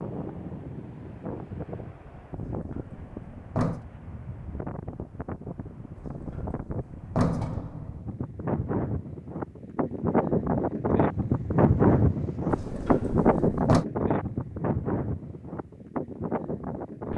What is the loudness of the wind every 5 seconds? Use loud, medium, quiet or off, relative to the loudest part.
quiet, medium, loud, medium.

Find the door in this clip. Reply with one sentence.
You can hear the door from 2.6 to 3.9 s, from 6.0 to 8.1 s and from 12.5 to 13.8 s.